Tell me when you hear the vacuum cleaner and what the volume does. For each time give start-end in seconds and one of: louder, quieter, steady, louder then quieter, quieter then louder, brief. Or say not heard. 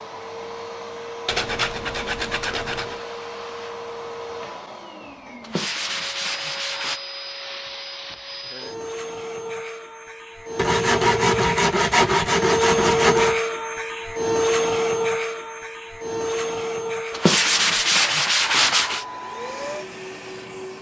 0.0-20.7 louder then quieter.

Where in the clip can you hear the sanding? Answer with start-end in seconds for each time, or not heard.
1.2-3.0, 5.4-7.0, 10.6-13.4, 17.1-19.1.